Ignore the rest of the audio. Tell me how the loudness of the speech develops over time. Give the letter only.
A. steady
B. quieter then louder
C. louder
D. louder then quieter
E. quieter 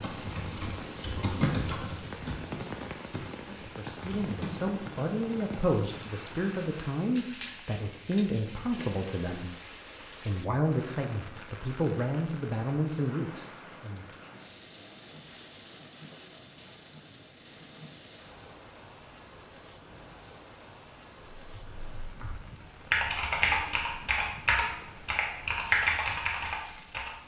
A.